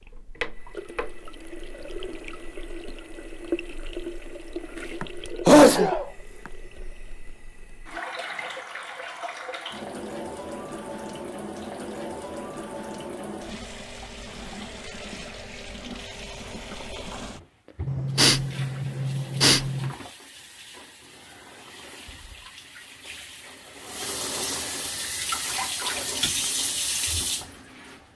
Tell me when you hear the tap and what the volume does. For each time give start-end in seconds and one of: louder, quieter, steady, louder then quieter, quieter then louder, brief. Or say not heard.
0.0-28.0 quieter then louder.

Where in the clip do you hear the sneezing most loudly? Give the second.
6 s.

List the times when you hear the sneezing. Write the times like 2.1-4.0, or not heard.
5.0-6.0, 17.9-19.9.